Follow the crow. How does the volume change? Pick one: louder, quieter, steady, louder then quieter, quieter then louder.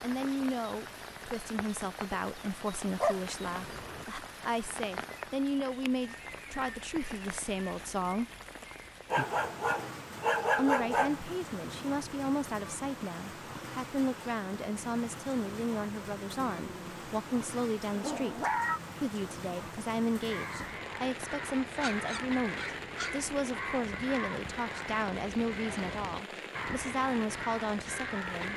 steady.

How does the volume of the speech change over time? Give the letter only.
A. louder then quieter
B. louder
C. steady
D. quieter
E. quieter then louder
C.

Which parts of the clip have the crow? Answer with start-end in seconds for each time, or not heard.
20.1-28.5.